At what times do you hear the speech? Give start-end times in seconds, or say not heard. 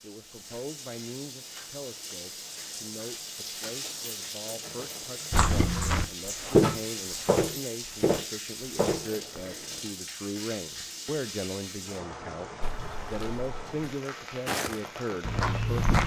0.0-15.9.